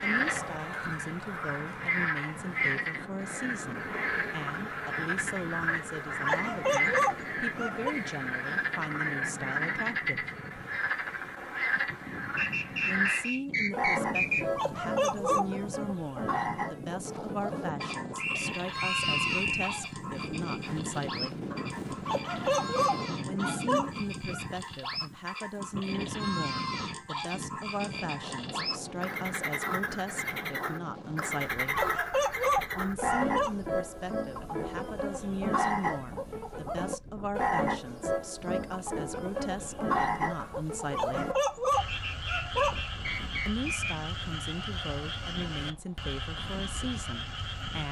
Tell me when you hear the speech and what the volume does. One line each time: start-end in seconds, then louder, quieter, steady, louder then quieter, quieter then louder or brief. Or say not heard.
0.0-10.2 steady
12.8-21.4 steady
23.2-31.8 steady
32.7-41.4 steady
43.5-47.8 steady.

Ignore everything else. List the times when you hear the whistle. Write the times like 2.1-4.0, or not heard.
12.3-14.4, 18.1-19.8, 41.9-44.0.